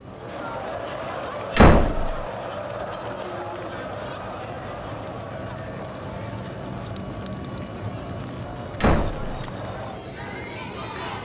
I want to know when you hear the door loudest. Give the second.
2 s.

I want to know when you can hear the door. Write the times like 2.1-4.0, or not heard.
1.6-2.2, 8.8-9.3.